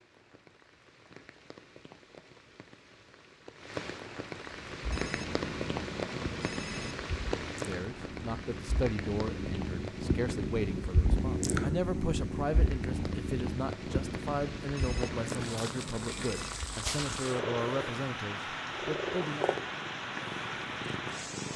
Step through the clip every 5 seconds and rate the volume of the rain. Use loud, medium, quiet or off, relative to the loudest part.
medium, loud, medium, loud, loud.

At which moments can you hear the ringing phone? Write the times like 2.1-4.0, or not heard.
4.9-7.0, 14.8-16.5.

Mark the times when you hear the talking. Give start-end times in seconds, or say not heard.
7.7-19.5.